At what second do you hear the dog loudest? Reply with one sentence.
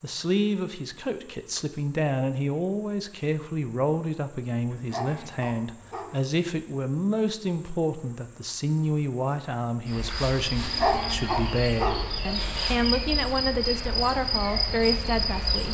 The volume of the dog peaks at 11 seconds.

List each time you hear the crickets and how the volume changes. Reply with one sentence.
The crickets can be heard from 0.0 to 15.6 s, getting louder.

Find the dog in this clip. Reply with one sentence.
You can hear the dog from 4.7 to 6.2 s and from 10.6 to 12.1 s.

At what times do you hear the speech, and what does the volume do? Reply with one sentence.
You can hear the speech from 0.0 to 15.6 s, at a steady volume.